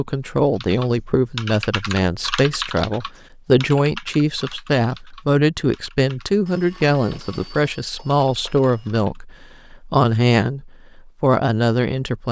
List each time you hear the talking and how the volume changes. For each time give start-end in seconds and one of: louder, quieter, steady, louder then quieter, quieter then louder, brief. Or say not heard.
0.0-12.2 steady.